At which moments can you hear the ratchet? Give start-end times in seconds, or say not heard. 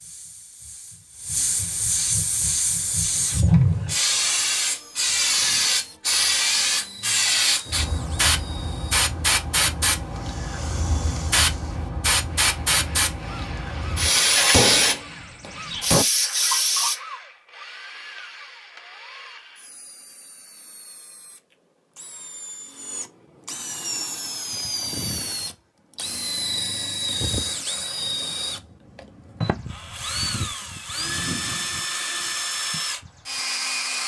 not heard.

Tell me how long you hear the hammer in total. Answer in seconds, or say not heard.
2 s.